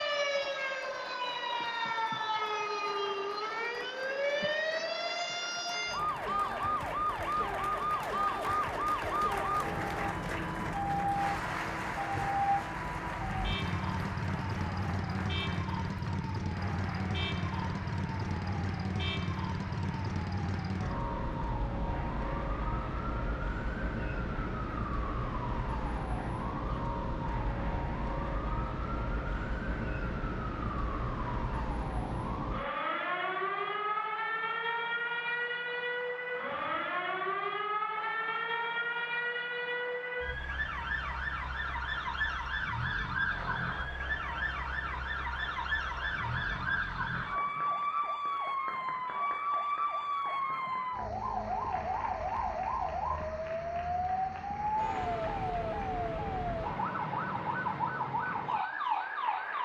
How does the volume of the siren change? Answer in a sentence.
The loudness of the siren stays about the same.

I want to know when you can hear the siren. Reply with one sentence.
You can hear the siren from 0.0 to 59.6 s.